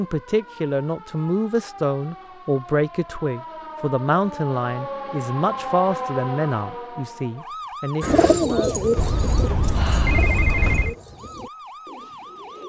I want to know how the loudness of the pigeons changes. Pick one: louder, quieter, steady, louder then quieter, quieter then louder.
quieter.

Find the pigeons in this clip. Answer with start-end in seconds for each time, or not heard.
8.0-12.6.